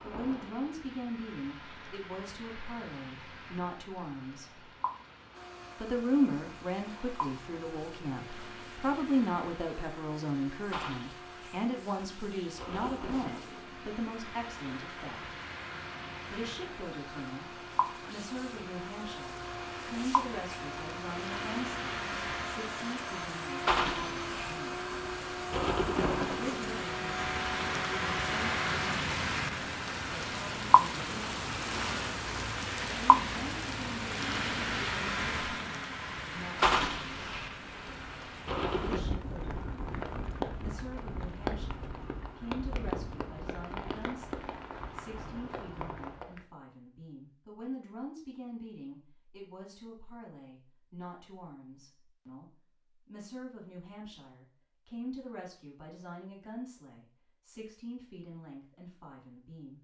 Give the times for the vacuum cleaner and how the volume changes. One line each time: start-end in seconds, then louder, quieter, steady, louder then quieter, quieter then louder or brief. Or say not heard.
5.3-29.0 louder.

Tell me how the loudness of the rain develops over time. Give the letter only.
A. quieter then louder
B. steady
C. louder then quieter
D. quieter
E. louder
C.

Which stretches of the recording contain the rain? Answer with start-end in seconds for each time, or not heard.
0.0-46.5.